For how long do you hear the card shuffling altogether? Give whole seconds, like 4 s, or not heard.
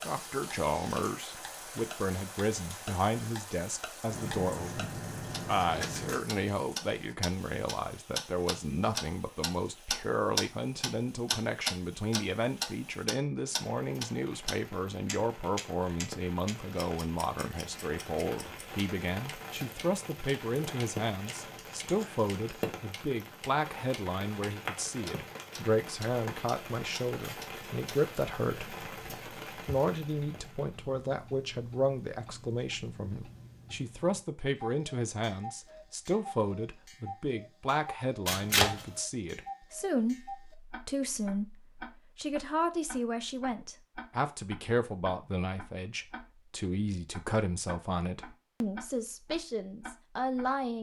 4 s.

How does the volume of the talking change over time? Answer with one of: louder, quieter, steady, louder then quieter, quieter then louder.
steady.